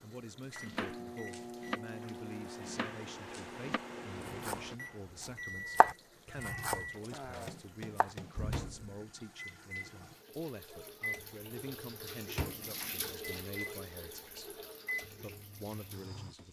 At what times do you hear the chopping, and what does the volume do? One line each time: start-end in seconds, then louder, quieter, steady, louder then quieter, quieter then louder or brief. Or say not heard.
0.6-8.7 louder then quieter.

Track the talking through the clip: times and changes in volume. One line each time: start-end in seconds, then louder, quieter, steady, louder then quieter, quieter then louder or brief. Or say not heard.
0.0-16.4 steady.